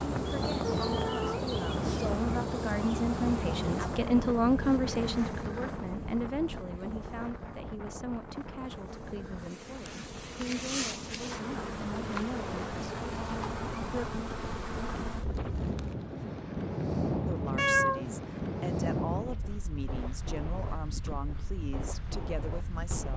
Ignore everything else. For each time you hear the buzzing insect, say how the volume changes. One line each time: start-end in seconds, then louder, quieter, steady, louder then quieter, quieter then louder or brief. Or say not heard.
0.0-15.9 quieter then louder.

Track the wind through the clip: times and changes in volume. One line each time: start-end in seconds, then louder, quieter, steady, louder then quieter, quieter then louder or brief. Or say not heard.
0.0-23.1 quieter then louder.